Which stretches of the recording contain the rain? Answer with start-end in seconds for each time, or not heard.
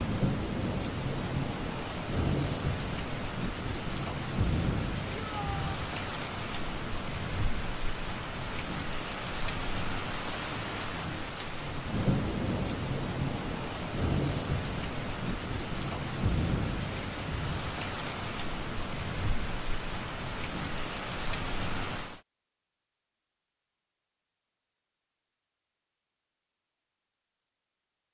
0.0-22.2.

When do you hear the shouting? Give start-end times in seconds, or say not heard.
5.2-5.7.